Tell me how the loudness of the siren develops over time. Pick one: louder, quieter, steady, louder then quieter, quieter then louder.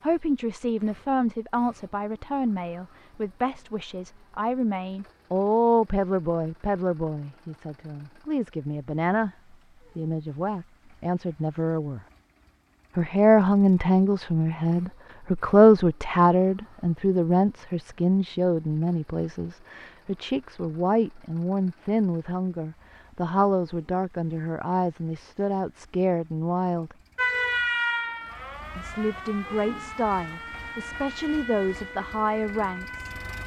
quieter.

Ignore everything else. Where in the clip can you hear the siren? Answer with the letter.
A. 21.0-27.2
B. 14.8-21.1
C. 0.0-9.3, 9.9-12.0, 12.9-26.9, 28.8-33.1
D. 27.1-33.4
D.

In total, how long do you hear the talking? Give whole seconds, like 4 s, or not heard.
30 s.